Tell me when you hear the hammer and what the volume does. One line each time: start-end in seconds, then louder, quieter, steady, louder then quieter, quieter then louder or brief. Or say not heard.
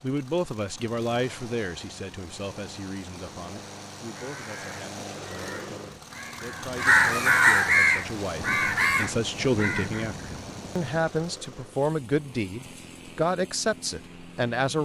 not heard.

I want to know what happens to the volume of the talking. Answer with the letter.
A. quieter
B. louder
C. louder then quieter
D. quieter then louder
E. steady
D.